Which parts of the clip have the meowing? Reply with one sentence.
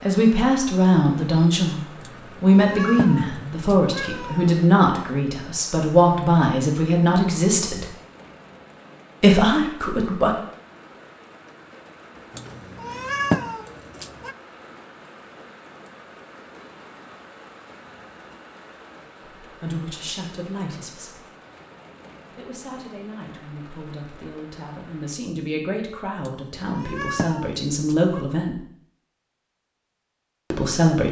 You can hear the meowing from 2.0 to 4.7 s, from 12.3 to 14.3 s and from 26.2 to 28.2 s.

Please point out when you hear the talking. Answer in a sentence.
The talking can be heard from 0.0 to 7.8 s, from 9.2 to 10.3 s, from 19.2 to 21.2 s, from 22.4 to 28.6 s and from 30.5 to 31.0 s.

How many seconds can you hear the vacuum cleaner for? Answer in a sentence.
The vacuum cleaner can't be heard in this clip.